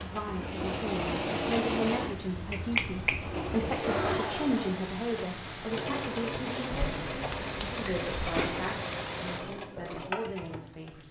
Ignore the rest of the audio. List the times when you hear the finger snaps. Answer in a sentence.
You can hear the finger snaps from 2.5 to 3.2 s and from 6.7 to 8.7 s.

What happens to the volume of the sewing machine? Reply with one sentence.
The loudness of the sewing machine goes down.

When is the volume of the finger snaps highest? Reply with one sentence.
The volume of the finger snaps peaks at 3 seconds.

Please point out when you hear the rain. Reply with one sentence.
You can hear the rain from 0.0 to 9.4 s.